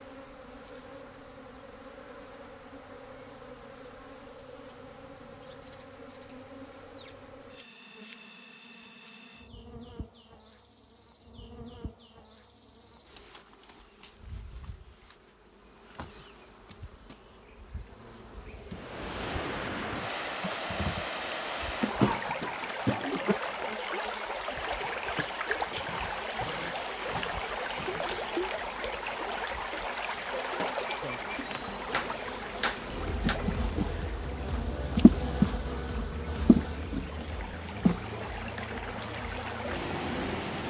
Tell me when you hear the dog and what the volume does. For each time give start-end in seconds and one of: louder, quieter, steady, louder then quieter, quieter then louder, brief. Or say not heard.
not heard.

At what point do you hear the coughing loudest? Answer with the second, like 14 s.
22 s.